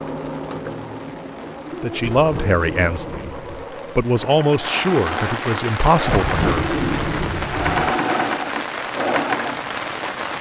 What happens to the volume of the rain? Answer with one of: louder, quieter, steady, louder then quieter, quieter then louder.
louder.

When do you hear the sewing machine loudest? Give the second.
8 s.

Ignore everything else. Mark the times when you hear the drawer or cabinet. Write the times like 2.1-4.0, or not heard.
1.9-3.6, 6.0-8.0.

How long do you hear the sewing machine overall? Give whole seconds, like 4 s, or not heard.
10 s.